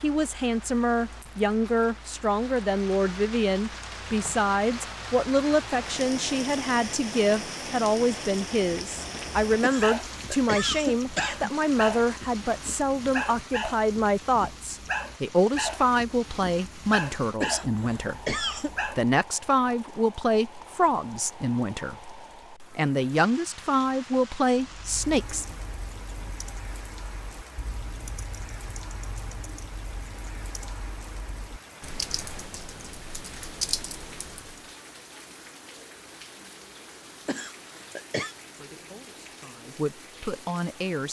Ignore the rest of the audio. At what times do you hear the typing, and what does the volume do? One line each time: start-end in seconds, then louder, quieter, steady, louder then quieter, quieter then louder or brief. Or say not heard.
24.6-34.7 louder.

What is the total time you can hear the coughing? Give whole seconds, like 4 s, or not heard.
4 s.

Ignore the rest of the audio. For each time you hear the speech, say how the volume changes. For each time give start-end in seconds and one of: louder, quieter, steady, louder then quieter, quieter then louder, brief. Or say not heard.
0.0-25.4 steady
38.4-41.0 brief.